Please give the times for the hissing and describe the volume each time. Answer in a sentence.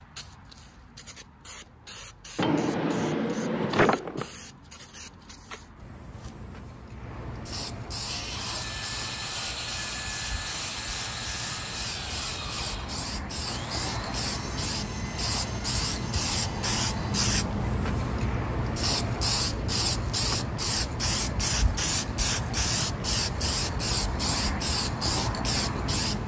You can hear the hissing from 0.0 to 26.2 s, getting louder.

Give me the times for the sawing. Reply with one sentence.
The sawing can be heard from 8.0 to 17.2 s.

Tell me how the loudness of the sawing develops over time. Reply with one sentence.
The volume of the sawing goes down.